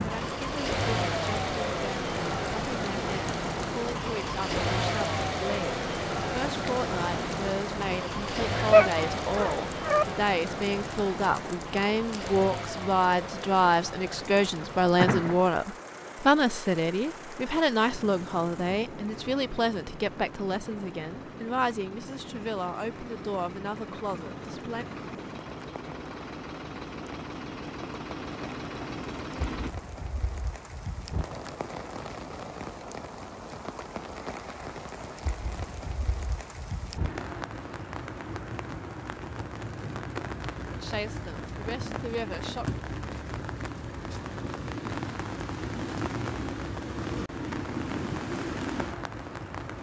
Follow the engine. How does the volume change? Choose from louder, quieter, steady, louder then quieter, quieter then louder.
quieter then louder.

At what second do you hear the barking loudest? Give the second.
9 s.